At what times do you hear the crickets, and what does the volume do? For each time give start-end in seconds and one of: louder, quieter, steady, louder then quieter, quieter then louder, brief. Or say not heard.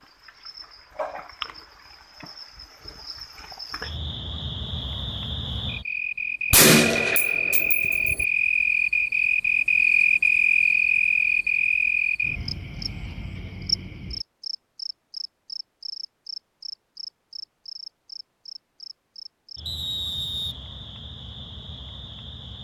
0.0-22.5 louder then quieter.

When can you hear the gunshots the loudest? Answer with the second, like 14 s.
7 s.